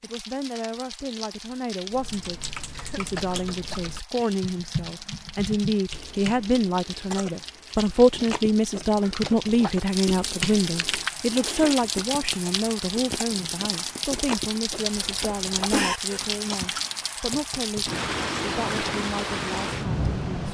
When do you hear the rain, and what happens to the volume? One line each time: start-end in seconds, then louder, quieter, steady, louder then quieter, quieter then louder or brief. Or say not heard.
0.0-20.5 louder.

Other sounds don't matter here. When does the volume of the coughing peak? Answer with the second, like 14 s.
16 s.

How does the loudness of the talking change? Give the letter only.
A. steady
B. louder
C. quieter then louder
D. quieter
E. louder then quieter
E.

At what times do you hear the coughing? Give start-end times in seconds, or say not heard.
2.8-4.3, 7.1-7.8, 14.9-16.0.